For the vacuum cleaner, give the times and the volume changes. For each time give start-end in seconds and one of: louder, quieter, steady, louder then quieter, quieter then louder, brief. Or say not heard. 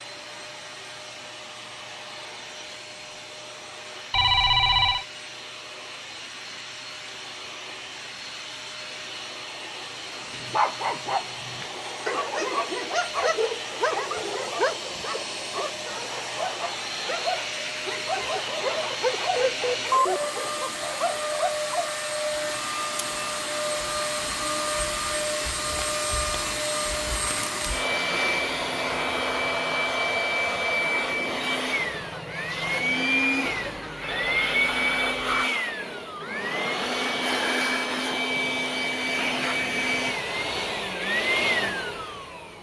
0.0-42.5 louder.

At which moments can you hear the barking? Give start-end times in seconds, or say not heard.
10.2-21.9.